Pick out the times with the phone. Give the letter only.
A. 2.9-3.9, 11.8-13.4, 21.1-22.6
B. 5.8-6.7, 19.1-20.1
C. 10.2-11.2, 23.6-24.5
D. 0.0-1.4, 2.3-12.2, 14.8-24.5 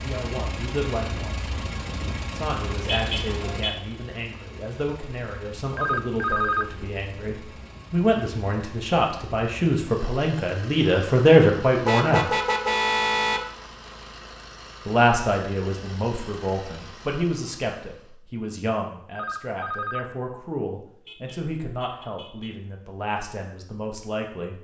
B.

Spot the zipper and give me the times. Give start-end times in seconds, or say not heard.
not heard.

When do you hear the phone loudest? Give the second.
6 s.